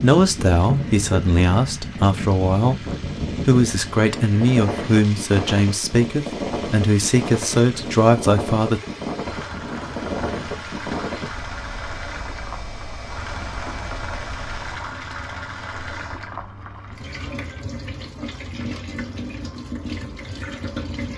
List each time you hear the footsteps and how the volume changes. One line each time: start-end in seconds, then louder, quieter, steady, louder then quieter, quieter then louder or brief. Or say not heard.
not heard.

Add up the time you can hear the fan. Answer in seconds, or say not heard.
15 s.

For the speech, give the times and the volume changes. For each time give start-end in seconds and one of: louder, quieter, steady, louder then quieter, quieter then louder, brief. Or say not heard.
0.0-8.8 steady.